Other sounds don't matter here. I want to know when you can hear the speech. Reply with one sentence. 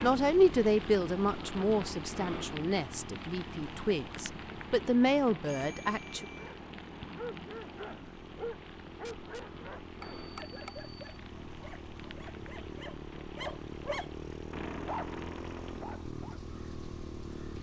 The speech can be heard from 0.0 to 6.2 s.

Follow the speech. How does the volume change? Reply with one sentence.
The loudness of the speech goes down, then up.